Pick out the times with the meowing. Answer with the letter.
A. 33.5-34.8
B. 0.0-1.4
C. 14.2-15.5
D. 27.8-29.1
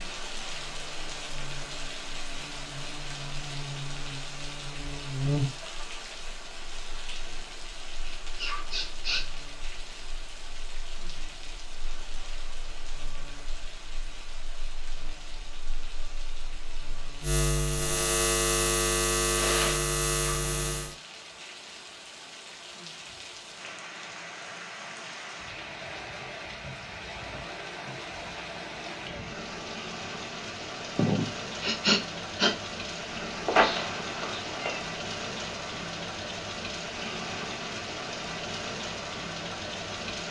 A.